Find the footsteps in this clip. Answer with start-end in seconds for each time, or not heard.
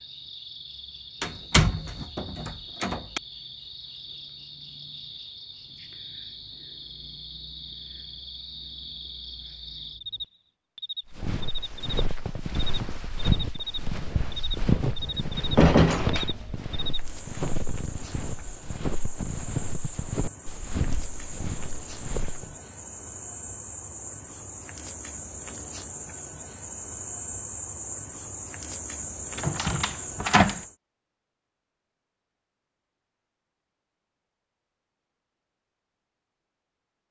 11.1-22.6.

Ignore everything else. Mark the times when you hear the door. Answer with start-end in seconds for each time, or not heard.
1.2-3.2, 14.8-16.6, 29.4-30.6.